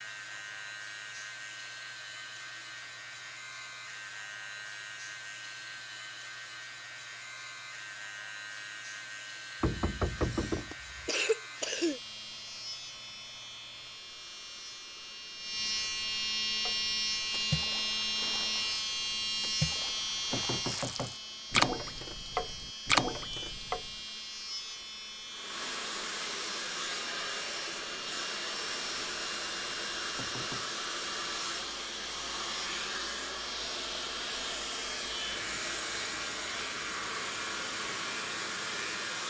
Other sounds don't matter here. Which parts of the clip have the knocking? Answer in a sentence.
You can hear the knocking from 9.6 to 11.1 s, from 20.3 to 21.6 s and from 30.1 to 30.6 s.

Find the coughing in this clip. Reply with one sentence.
You can hear the coughing from 10.2 to 12.0 s.